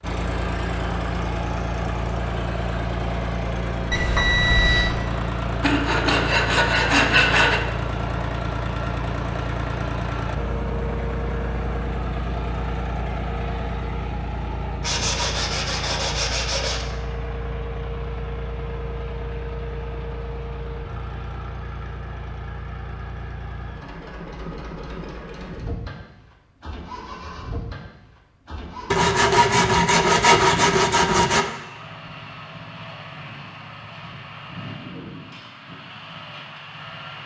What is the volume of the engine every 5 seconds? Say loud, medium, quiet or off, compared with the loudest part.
loud, loud, loud, medium, medium, medium, medium, medium.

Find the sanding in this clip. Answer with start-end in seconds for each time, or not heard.
5.6-7.6, 14.8-16.9, 28.9-31.4.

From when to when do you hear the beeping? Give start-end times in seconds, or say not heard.
3.9-4.9.